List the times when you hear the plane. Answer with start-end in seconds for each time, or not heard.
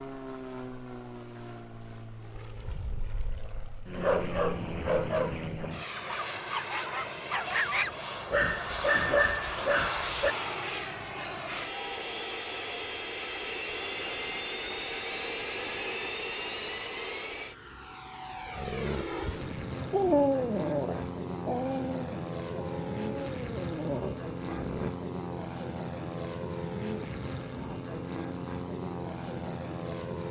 0.0-30.2.